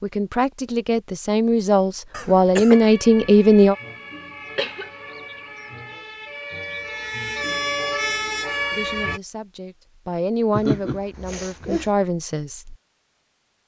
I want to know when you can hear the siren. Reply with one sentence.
You can hear the siren from 2.6 to 9.2 s.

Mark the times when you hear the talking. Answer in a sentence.
You can hear the talking from 0.0 to 3.8 s and from 8.7 to 12.8 s.